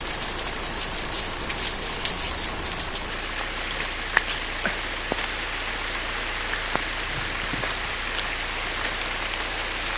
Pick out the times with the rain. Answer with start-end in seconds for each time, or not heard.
0.0-9.9.